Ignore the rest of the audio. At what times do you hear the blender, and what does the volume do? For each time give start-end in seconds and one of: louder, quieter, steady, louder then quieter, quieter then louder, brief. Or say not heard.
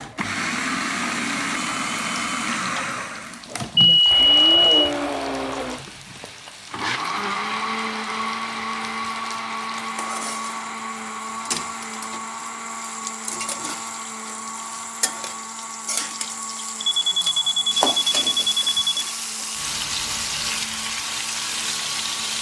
0.0-22.3 quieter.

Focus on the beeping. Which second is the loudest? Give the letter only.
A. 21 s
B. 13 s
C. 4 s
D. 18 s
C.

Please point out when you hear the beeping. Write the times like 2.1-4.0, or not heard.
3.8-4.9, 16.8-19.1.